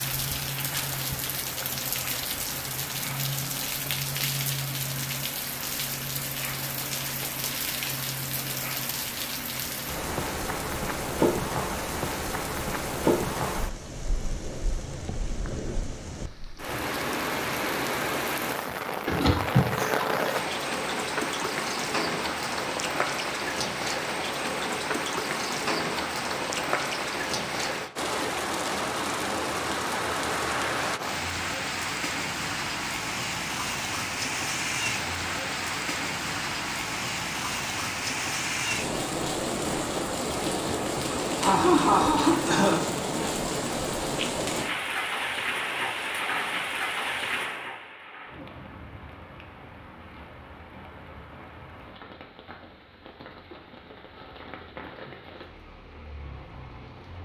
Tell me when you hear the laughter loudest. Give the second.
42 s.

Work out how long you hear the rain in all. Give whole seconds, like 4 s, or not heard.
57 s.